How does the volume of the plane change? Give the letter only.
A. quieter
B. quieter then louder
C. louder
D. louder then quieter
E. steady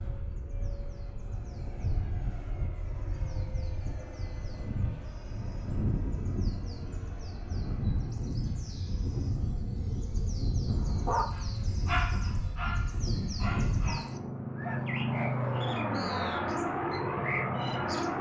C.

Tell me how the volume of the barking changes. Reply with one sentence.
The volume of the barking goes down.